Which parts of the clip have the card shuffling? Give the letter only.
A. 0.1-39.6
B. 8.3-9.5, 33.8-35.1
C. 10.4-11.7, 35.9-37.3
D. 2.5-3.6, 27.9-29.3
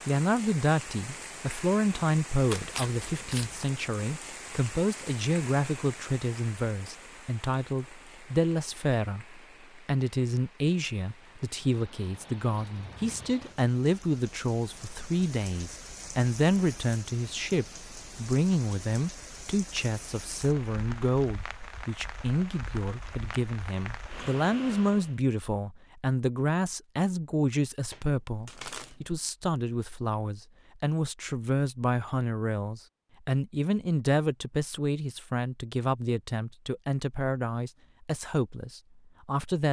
D.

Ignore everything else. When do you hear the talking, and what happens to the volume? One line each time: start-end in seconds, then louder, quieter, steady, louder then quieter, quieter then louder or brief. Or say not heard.
0.1-39.6 steady.